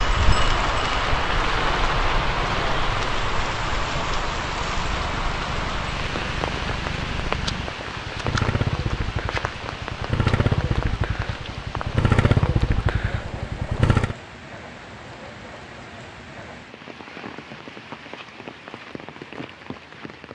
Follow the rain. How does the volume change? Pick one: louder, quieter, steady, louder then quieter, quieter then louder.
quieter.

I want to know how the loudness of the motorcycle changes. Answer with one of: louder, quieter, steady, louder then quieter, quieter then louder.
louder.